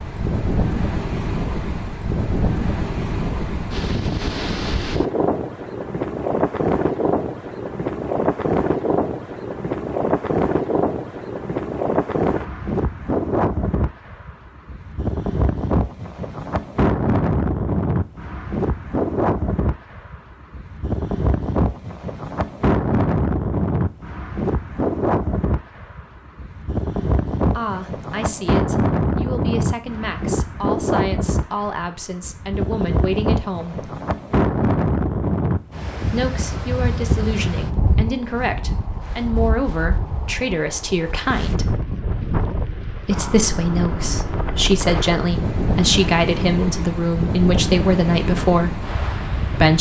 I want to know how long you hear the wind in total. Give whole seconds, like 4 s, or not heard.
50 s.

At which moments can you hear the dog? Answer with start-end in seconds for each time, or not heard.
not heard.